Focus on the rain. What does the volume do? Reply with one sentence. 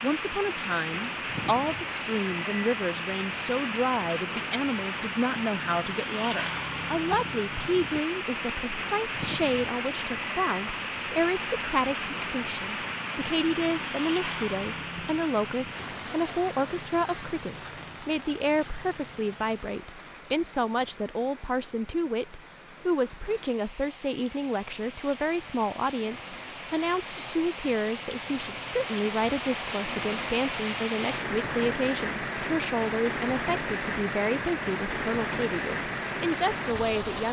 The volume of the rain goes down, then up.